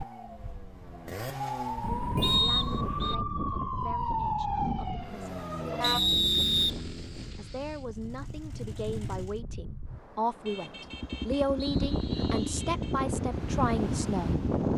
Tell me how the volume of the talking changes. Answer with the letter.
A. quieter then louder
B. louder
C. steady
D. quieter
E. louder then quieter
B.